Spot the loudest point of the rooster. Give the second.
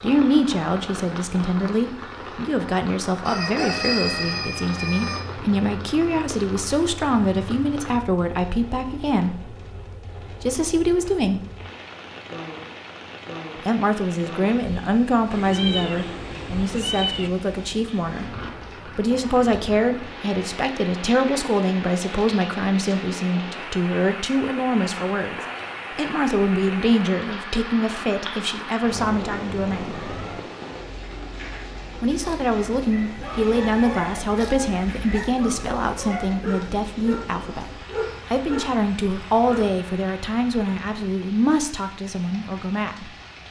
4 s.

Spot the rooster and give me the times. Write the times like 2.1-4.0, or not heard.
3.2-5.2, 33.2-35.2.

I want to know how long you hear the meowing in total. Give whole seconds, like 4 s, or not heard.
4 s.